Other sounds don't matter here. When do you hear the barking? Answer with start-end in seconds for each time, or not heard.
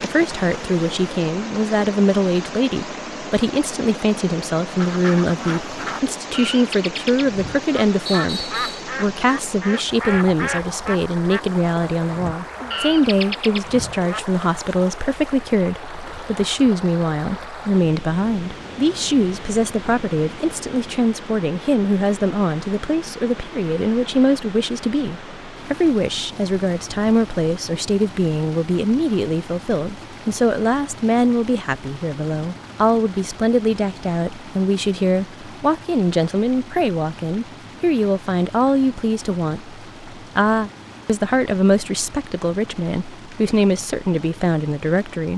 not heard.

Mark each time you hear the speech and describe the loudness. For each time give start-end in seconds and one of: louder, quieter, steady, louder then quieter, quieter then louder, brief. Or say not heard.
0.0-45.3 steady.